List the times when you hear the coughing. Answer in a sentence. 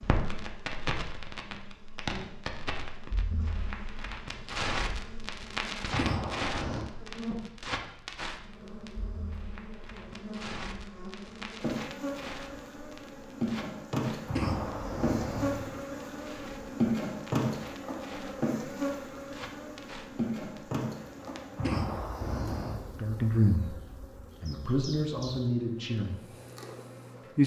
You can hear the coughing from 5.9 to 6.8 s, from 14.2 to 15.8 s and from 21.6 to 22.9 s.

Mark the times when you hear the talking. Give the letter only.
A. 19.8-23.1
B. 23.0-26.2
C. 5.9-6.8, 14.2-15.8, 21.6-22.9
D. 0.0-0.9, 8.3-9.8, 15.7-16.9
B.